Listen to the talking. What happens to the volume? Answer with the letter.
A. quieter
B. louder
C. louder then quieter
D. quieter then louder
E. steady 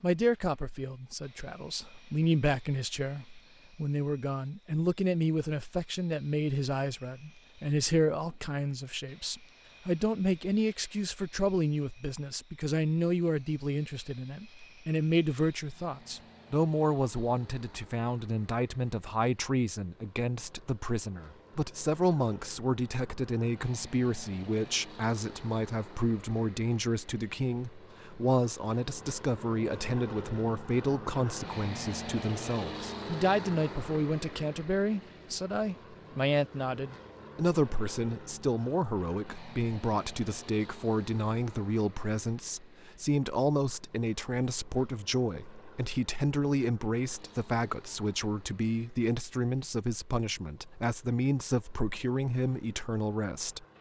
E.